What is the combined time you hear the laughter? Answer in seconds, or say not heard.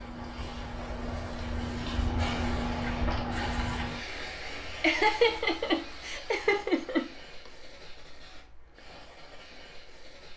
2 s.